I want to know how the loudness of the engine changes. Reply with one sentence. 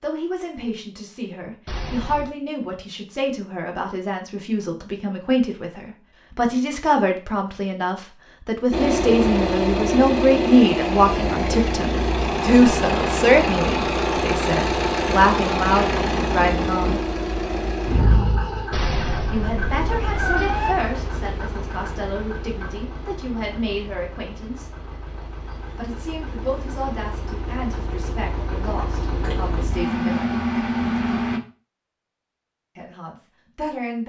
The volume of the engine goes down, then up.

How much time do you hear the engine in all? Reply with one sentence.
The engine can be heard for 23 seconds in total.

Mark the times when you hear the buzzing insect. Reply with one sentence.
The buzzing insect can't be heard in this clip.